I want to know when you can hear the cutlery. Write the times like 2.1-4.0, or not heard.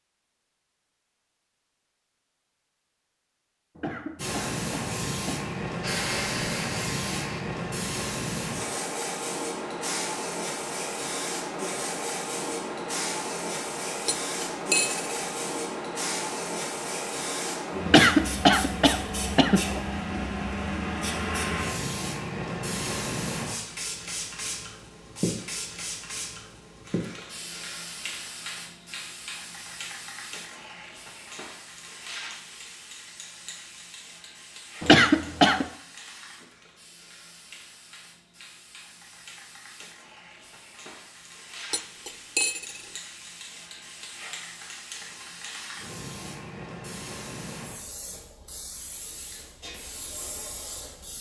14.1-15.1, 41.7-42.9.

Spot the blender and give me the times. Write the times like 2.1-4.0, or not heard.
5.8-7.5.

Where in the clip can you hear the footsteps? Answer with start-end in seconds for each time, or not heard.
not heard.